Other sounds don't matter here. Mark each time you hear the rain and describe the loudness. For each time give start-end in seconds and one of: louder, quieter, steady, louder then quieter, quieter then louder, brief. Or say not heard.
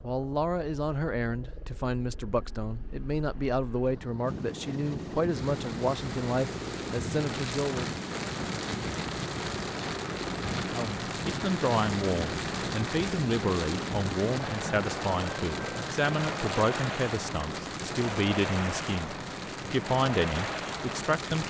5.2-21.4 steady.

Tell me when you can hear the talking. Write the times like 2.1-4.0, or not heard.
0.0-8.0, 10.7-21.4.